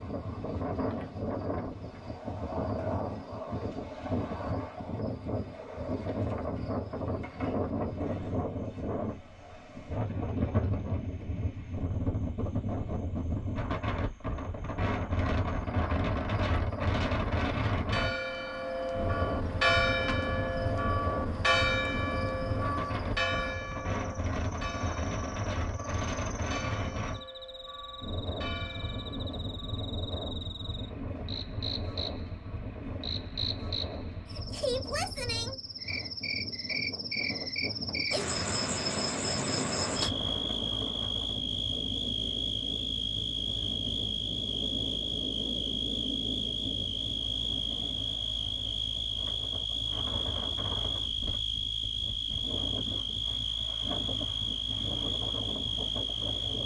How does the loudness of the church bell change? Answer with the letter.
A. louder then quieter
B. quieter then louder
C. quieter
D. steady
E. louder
C.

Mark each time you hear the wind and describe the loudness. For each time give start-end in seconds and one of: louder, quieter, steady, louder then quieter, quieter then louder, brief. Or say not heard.
0.0-56.6 quieter.